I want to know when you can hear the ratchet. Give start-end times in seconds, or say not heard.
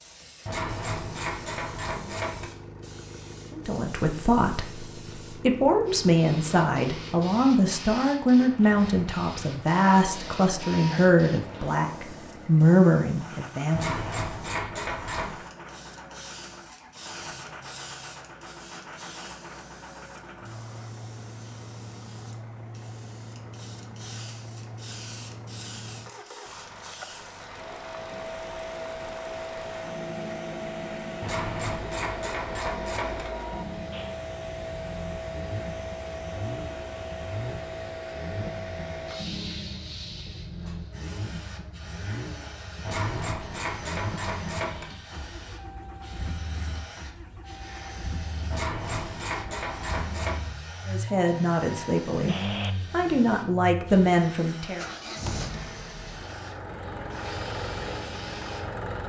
0.5-2.5, 13.7-15.3, 31.2-33.2, 42.8-44.9, 48.5-50.4.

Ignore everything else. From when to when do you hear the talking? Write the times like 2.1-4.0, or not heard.
3.5-14.0, 50.9-54.9.